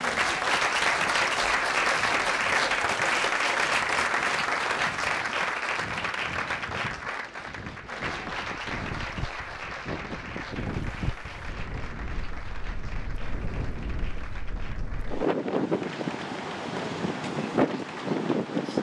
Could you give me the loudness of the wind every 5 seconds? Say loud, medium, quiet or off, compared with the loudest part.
quiet, quiet, medium, loud.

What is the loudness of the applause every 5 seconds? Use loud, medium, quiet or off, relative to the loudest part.
loud, medium, quiet, quiet.